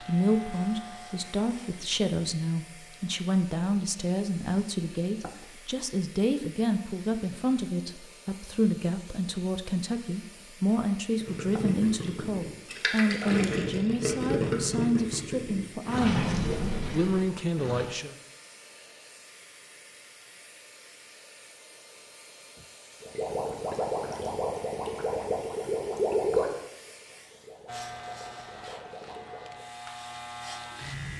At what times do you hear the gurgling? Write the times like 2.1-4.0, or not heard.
11.2-17.9, 23.0-29.6.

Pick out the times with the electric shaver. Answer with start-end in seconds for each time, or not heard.
0.0-3.0, 27.6-31.1.